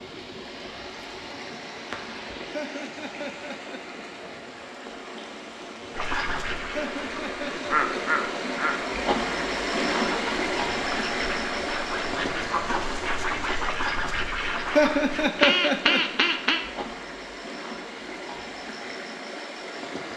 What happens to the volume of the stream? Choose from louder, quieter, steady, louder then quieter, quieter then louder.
louder then quieter.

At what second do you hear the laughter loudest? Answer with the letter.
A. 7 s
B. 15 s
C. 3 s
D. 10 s
B.